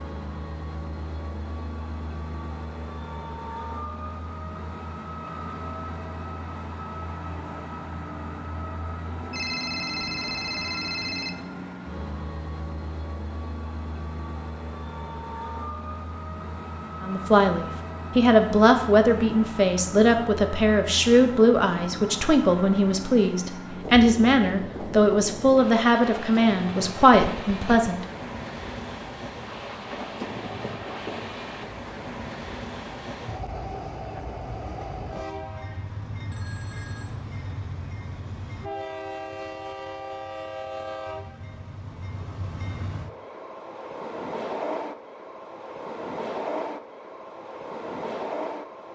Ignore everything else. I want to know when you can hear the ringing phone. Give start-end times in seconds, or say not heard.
9.3-11.3, 27.1-27.9, 36.3-37.1.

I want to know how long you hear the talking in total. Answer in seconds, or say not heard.
11 s.